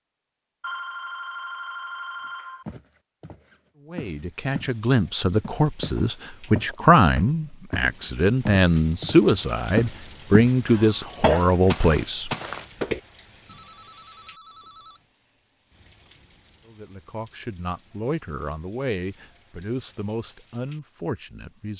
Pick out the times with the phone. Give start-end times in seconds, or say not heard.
0.6-2.6, 13.4-15.1.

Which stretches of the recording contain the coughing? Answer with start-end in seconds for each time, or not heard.
10.7-11.5.